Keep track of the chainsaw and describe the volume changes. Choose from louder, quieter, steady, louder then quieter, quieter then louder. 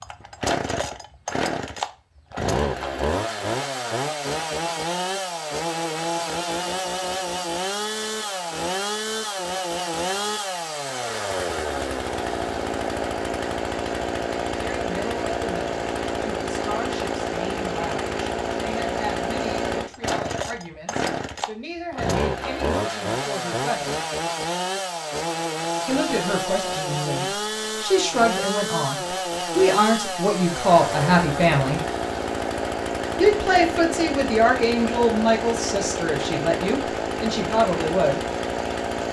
steady.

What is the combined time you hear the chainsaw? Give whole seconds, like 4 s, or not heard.
39 s.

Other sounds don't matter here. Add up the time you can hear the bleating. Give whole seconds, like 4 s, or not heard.
not heard.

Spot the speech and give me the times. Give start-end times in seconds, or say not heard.
14.7-23.9, 25.9-31.8, 33.1-38.2.